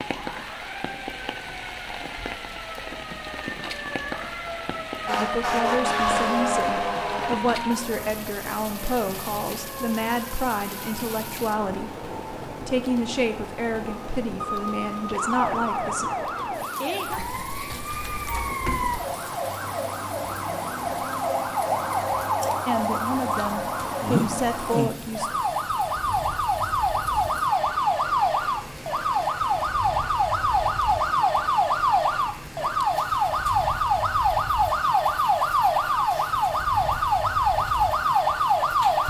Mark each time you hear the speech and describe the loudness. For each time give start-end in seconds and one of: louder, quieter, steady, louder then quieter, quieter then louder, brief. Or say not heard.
5.2-16.1 steady
22.6-25.3 brief.